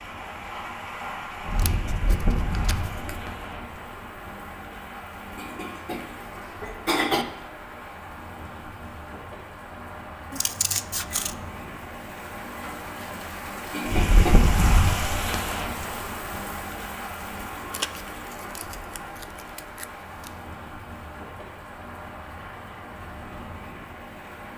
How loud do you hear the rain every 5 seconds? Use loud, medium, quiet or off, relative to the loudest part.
loud, medium, loud, loud, medium.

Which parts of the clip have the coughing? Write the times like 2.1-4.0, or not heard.
5.3-7.2, 13.7-14.3.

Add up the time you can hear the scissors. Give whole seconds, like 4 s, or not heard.
5 s.